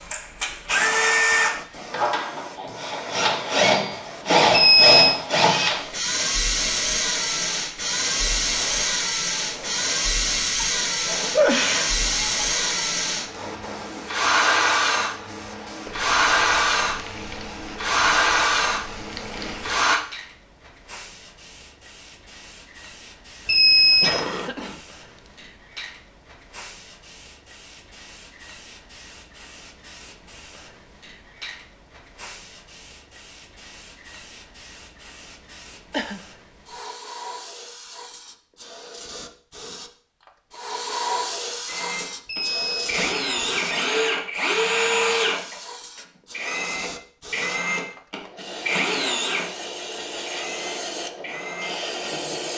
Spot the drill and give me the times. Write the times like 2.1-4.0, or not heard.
0.0-20.0, 41.6-52.5.